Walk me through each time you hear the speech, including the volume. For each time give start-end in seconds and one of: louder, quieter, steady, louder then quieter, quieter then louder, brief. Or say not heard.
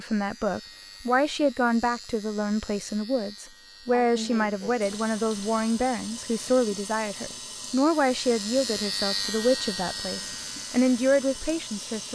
0.0-12.1 steady.